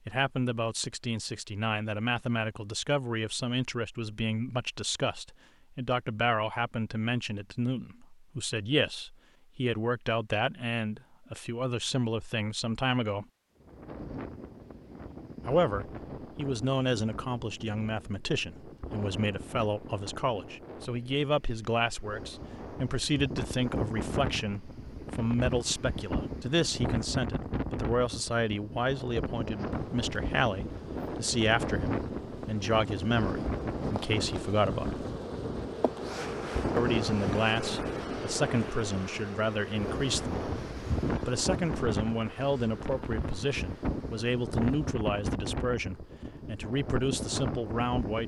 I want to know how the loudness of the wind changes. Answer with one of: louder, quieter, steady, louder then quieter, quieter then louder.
louder.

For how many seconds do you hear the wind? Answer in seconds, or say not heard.
35 s.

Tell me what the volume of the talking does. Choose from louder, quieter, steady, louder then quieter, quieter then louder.
steady.